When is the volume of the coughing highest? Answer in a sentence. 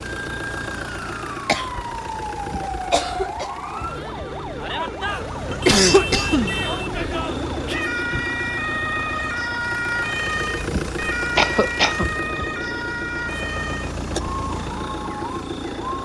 The loudest moment of the coughing is at 6 seconds.